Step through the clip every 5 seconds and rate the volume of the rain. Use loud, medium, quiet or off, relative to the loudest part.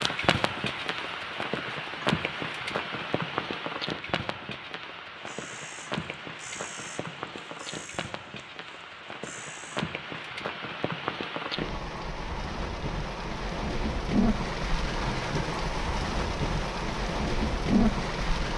loud, medium, loud, loud.